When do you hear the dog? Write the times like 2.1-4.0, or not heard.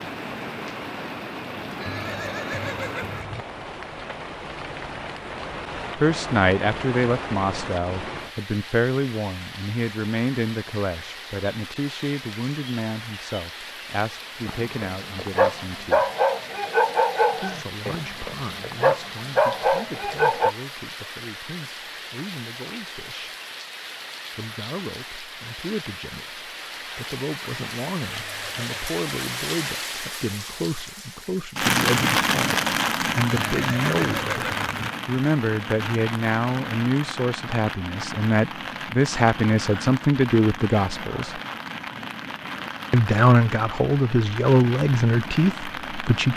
14.4-20.6.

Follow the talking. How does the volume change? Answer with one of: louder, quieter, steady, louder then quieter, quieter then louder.
quieter then louder.